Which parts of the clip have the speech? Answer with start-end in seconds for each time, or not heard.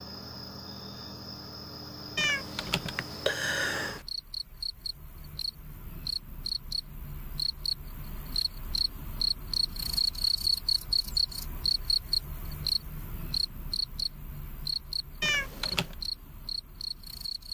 not heard.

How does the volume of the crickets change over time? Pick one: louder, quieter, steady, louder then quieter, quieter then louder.
louder then quieter.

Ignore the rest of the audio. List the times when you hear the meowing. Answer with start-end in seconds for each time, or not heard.
2.1-4.0, 15.2-15.9.